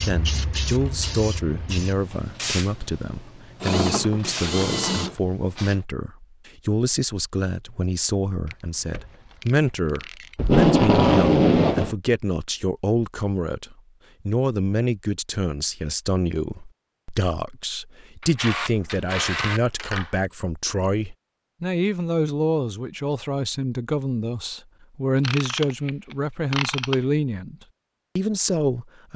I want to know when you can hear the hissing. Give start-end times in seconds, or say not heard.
0.0-5.8.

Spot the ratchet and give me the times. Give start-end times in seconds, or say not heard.
3.6-5.2, 8.4-10.5, 18.2-20.3, 25.2-26.9.